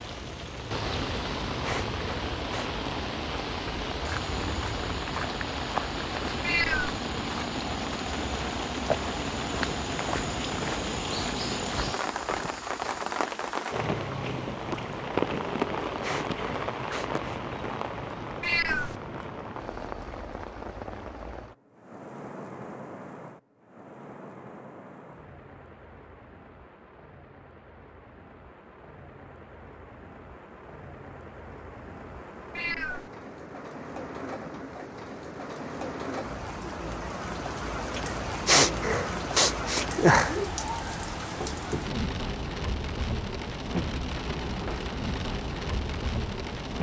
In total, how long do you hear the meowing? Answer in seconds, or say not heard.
2 s.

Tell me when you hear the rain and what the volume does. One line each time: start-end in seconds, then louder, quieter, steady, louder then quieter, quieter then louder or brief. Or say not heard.
0.0-46.7 quieter then louder.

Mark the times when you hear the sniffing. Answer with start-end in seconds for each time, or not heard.
1.6-2.7, 16.0-17.4, 38.5-40.4.